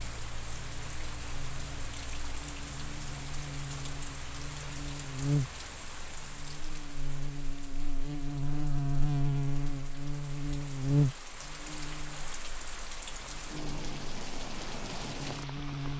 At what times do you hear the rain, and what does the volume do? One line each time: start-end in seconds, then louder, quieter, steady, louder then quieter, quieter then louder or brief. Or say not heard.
0.0-15.9 quieter then louder.